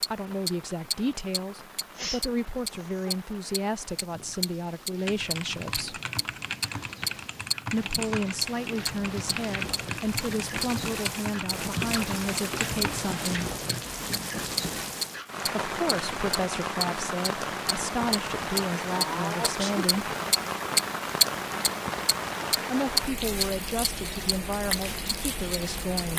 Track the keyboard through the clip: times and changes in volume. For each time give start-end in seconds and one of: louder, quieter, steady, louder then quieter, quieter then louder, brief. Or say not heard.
5.0-13.0 steady.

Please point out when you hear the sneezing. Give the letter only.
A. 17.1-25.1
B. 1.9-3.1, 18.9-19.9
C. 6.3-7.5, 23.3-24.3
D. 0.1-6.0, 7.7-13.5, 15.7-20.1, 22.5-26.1
B.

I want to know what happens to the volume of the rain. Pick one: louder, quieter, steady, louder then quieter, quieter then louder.
louder.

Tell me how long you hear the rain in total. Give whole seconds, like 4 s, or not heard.
26 s.